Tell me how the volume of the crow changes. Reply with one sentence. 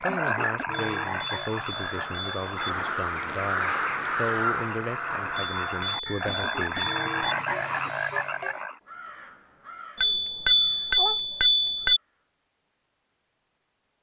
The volume of the crow goes down.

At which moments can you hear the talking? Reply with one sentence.
You can hear the talking from 0.0 to 7.1 s.